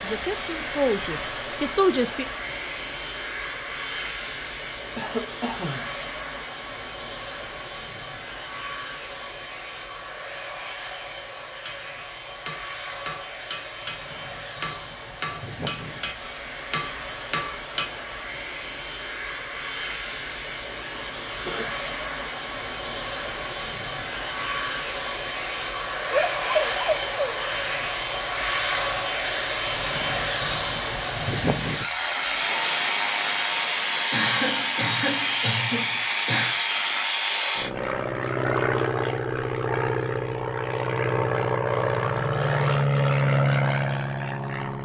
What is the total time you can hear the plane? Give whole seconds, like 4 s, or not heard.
45 s.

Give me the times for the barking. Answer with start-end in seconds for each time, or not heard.
26.1-27.6.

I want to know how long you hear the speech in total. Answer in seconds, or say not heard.
2 s.